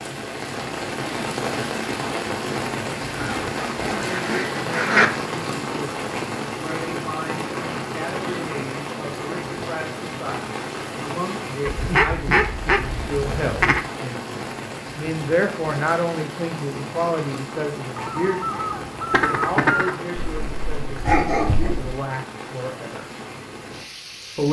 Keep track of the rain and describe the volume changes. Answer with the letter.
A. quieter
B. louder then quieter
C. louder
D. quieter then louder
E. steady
A.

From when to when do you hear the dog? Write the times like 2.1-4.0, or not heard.
20.1-21.9.